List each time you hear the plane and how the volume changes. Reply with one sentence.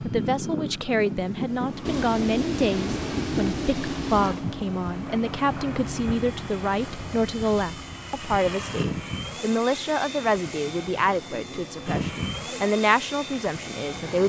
You can hear the plane from 0.0 to 14.2 s, at a steady volume.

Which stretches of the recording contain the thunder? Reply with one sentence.
You can hear the thunder from 1.9 to 4.5 s.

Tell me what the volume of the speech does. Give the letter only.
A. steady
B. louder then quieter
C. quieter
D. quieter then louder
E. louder
A.